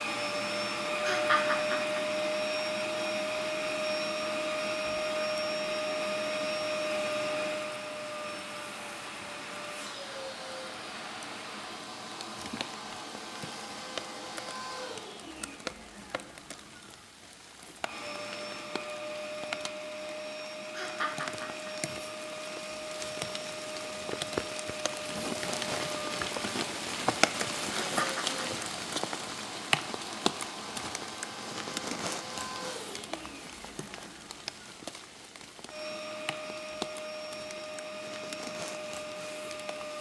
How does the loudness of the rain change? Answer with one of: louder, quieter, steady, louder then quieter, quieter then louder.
louder then quieter.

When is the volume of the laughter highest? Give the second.
1 s.